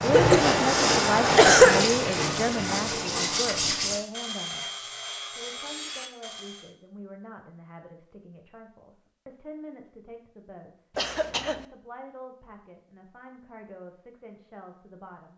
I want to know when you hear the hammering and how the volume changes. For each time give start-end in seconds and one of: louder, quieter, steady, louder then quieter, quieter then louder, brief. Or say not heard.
not heard.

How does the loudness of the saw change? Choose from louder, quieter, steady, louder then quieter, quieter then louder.
quieter.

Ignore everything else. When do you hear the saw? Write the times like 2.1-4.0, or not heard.
0.0-6.7.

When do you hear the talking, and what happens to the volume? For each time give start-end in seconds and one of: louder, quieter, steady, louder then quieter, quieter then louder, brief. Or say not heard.
0.0-15.3 quieter.